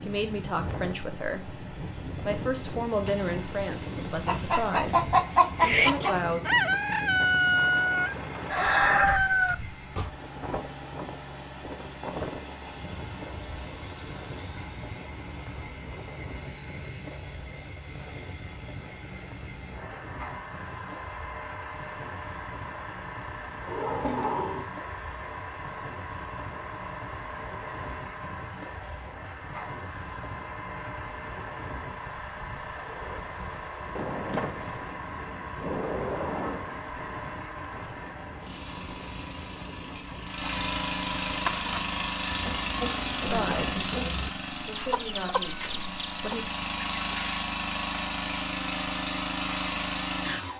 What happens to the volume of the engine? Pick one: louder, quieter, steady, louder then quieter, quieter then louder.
louder.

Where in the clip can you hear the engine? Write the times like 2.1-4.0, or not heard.
0.0-50.5.